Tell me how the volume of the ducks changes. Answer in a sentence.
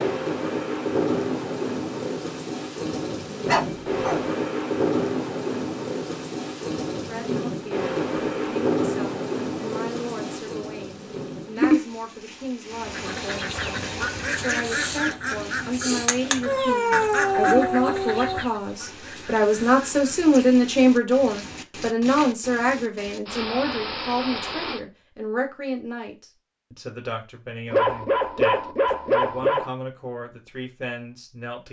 The volume of the ducks goes down.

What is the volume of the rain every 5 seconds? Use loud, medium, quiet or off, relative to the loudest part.
loud, loud, loud, quiet, medium, off, off.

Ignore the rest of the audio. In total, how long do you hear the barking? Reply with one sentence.
You can hear the barking for 5 seconds altogether.